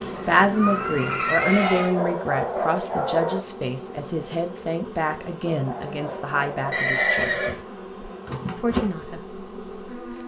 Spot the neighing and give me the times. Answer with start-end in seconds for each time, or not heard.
0.0-1.9, 6.7-8.1.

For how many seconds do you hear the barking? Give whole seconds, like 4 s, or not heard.
4 s.